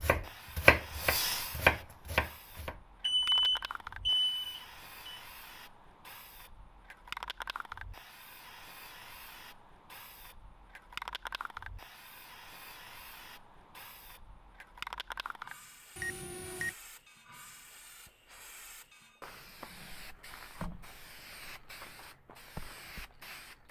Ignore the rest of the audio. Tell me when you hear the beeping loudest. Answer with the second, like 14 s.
3 s.